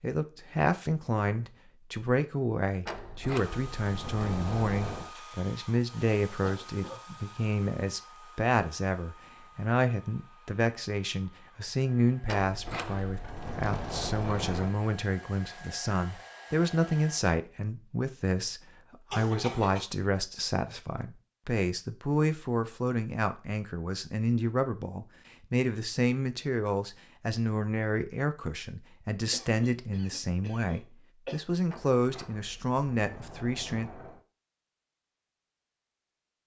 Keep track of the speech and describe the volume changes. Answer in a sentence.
The volume of the speech stays about the same.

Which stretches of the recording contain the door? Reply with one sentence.
You can hear the door from 2.9 to 5.2 s, from 12.2 to 14.8 s and from 31.6 to 34.2 s.